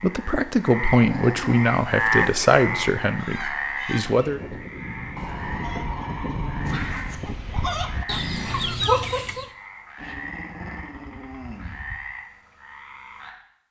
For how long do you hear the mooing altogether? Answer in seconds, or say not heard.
not heard.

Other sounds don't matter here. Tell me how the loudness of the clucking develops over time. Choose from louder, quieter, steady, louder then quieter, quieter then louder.
louder.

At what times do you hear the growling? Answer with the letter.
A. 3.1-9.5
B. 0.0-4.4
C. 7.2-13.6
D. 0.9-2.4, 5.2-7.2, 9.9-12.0
D.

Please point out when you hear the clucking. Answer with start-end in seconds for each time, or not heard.
3.1-9.5.